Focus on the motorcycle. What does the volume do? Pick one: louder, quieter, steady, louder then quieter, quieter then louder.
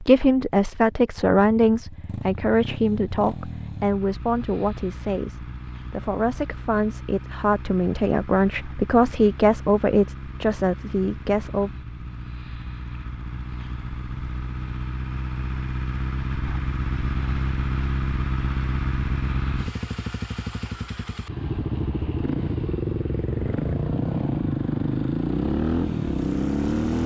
louder.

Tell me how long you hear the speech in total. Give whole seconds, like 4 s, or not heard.
12 s.